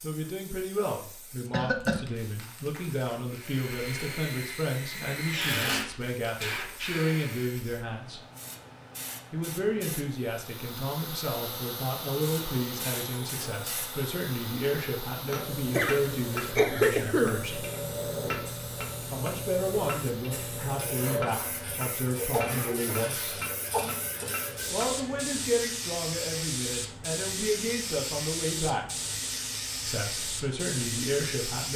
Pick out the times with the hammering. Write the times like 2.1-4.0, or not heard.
15.2-25.2.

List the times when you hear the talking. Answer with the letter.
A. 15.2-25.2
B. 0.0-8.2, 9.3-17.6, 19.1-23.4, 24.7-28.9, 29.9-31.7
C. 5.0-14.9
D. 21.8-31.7
B.